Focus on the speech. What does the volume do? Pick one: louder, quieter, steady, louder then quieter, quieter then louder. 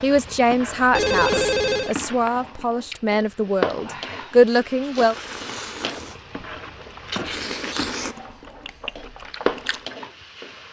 quieter then louder.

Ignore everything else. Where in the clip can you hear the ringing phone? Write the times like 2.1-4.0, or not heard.
0.9-1.9.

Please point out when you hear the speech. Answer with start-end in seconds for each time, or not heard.
0.0-5.2.